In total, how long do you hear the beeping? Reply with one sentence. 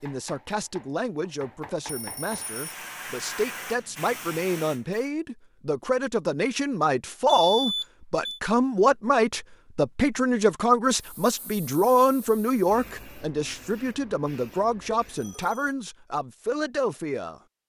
You can hear the beeping for 3 seconds altogether.